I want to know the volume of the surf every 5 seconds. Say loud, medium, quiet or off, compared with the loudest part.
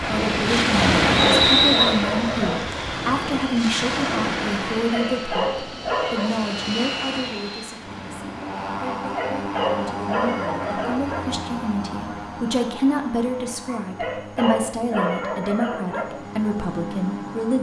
loud, quiet, off, off.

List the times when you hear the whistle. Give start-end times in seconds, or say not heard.
1.1-1.9.